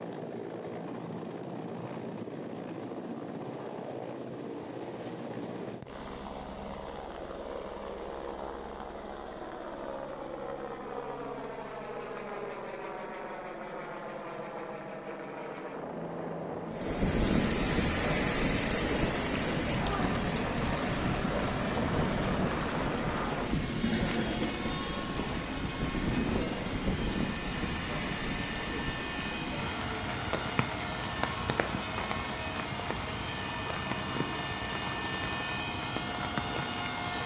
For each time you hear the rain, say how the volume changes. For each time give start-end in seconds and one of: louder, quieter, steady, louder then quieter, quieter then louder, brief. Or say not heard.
16.7-37.2 quieter.